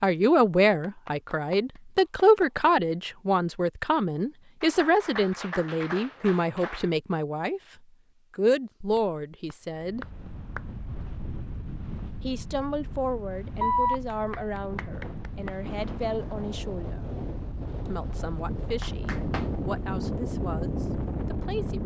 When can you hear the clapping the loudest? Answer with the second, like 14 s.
14 s.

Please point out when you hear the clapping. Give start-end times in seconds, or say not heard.
0.8-2.7, 4.6-6.9, 8.8-10.6, 13.6-15.5, 18.8-19.4.